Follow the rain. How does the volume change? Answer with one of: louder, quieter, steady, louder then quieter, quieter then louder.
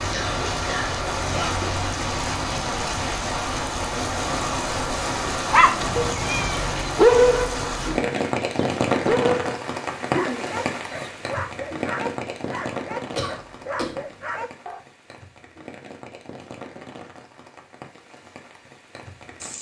quieter.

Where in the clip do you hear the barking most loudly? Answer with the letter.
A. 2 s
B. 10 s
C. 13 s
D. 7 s
D.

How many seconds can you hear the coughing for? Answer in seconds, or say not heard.
4 s.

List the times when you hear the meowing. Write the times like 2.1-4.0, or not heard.
5.8-6.7.